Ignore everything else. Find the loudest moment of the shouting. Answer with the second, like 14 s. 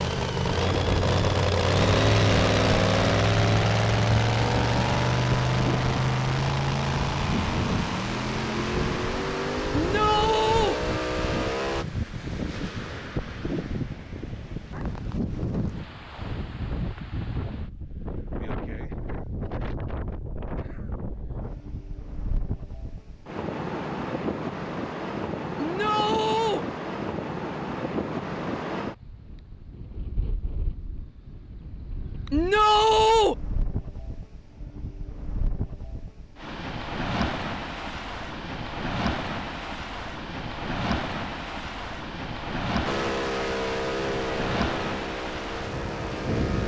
33 s.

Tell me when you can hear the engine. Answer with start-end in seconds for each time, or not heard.
0.0-11.8, 42.9-46.6.